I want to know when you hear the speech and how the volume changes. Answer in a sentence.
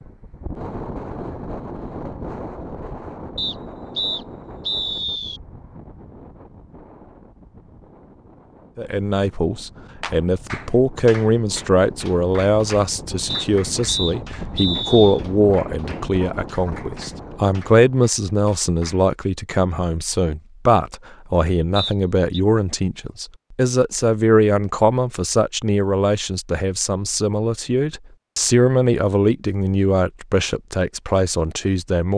You can hear the speech from 8.8 to 32.1 s, at a steady volume.